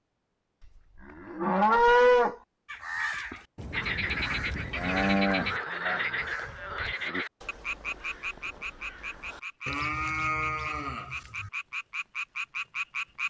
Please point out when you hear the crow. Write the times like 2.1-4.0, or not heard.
2.6-9.4.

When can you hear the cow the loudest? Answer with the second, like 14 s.
2 s.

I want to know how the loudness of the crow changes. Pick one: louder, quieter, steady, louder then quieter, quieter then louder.
quieter.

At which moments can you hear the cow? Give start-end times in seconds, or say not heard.
1.1-2.4, 4.8-7.0, 9.7-11.5.